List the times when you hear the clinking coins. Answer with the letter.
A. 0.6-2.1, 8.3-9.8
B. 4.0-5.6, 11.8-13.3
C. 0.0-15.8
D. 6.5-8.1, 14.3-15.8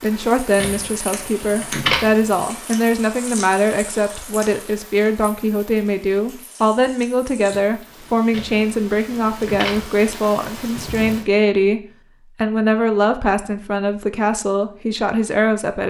A.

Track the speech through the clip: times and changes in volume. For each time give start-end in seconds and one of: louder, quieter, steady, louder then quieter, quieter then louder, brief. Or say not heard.
0.0-15.8 steady.